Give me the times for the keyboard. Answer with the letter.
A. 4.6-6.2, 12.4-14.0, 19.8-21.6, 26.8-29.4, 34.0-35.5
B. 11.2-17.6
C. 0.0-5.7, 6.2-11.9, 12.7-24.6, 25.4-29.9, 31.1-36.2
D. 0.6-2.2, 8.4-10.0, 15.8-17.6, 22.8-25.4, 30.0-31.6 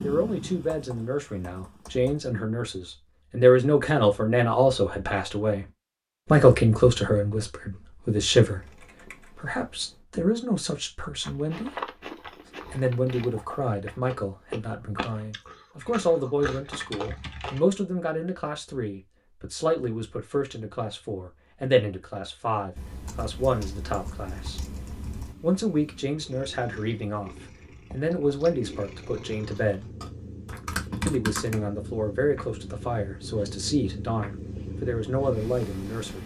D.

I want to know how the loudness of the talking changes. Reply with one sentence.
The volume of the talking goes down.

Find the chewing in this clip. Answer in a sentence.
You can hear the chewing from 11.2 to 17.6 s.